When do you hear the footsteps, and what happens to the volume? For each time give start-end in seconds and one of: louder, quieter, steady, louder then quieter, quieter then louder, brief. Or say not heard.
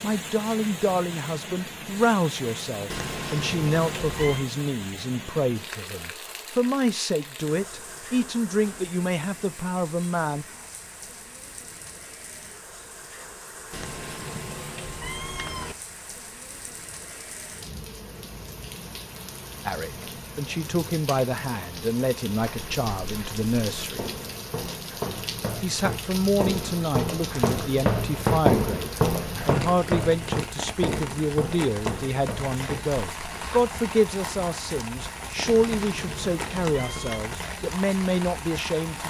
22.4-33.6 louder then quieter.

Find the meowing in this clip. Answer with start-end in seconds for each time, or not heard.
2.9-4.5, 13.7-15.8, 35.5-37.2.